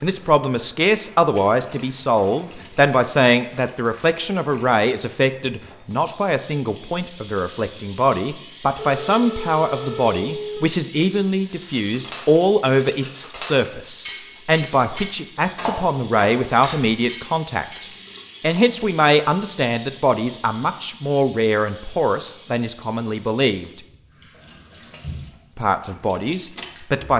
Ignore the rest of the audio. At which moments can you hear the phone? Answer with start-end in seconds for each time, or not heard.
8.8-10.6.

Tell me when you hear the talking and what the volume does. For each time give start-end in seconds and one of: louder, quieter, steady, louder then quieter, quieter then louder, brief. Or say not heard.
0.0-23.8 steady
25.6-27.1 brief.